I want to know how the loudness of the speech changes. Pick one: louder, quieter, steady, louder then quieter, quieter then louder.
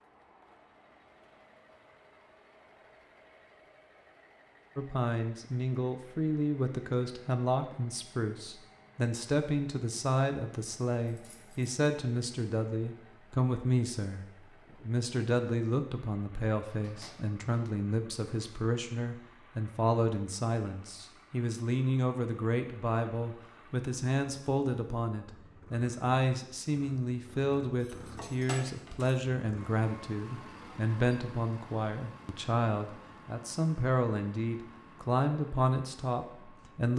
steady.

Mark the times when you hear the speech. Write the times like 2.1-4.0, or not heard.
4.8-36.9.